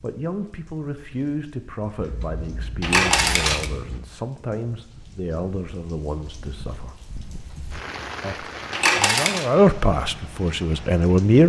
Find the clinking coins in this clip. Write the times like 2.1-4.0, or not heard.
2.8-3.7, 8.7-9.4.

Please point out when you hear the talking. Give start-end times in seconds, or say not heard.
0.0-7.0, 8.2-11.4.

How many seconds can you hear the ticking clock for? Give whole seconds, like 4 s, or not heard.
not heard.